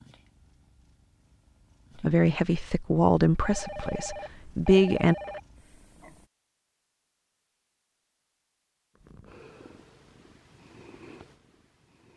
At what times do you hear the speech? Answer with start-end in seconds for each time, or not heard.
2.0-5.2.